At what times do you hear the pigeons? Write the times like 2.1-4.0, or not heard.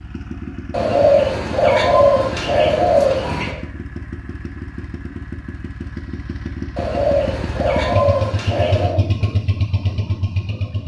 0.7-3.5, 6.8-8.9.